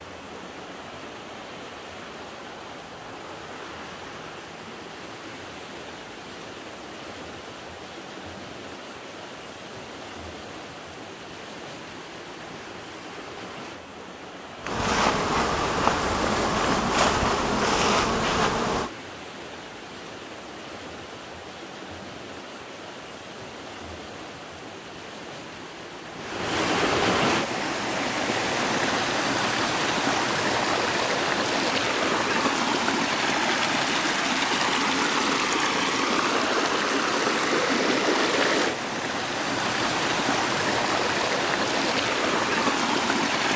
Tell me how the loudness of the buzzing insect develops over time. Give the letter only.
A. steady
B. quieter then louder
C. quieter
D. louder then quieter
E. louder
A.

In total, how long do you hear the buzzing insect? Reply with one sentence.
You can hear the buzzing insect for 4 seconds altogether.